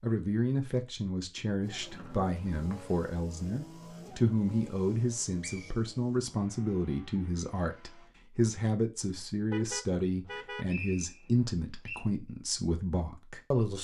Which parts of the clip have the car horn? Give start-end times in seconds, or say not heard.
9.4-10.7.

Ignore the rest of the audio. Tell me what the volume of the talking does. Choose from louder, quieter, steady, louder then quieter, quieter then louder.
steady.